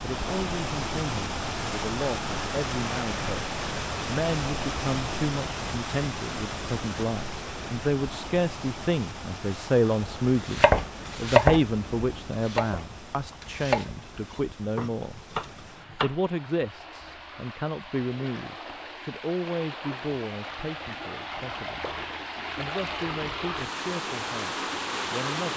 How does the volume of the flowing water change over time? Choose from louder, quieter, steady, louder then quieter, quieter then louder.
quieter then louder.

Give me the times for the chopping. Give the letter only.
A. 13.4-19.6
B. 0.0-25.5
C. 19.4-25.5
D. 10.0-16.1
D.